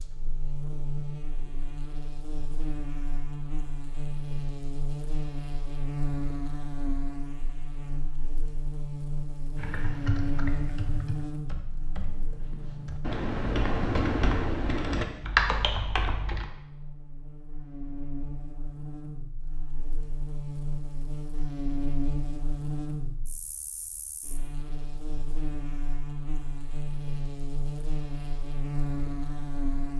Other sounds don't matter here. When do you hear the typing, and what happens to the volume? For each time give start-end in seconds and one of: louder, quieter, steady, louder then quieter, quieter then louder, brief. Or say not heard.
9.6-16.4 quieter then louder.